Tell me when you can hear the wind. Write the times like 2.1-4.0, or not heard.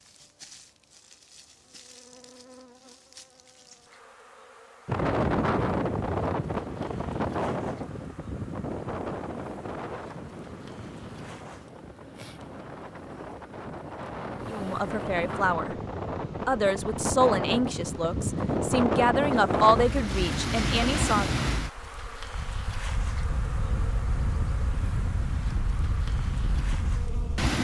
4.8-27.5.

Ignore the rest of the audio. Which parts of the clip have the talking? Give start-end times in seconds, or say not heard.
14.5-15.8, 16.4-21.2.